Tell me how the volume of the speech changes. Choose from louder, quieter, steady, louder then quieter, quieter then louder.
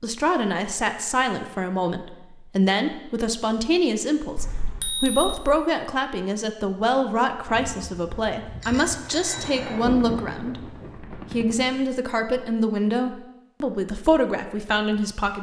steady.